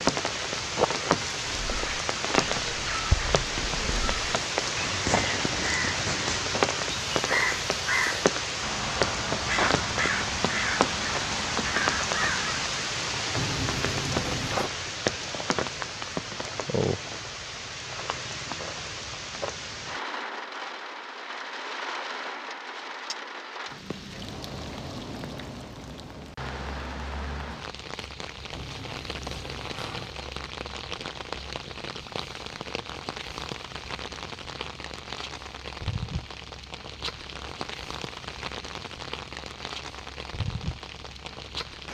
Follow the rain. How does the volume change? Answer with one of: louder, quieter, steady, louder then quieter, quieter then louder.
quieter.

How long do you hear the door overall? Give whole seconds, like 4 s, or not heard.
3 s.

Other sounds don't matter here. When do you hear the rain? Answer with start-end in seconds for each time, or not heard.
0.0-41.8.